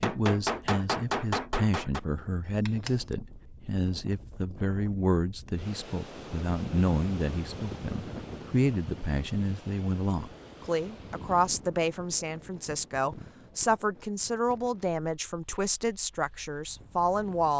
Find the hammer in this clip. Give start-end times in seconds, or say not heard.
0.0-3.1.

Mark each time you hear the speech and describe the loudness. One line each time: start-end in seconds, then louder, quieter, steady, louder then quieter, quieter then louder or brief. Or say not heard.
0.0-17.5 steady.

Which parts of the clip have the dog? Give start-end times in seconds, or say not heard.
not heard.